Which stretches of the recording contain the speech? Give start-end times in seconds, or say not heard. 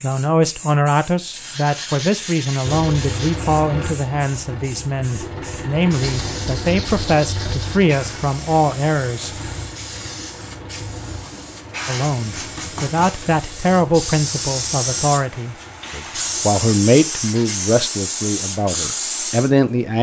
0.0-9.3, 11.8-19.9.